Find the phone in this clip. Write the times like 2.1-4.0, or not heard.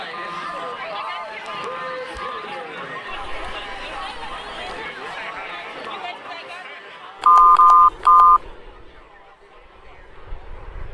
0.1-2.5, 7.2-8.4.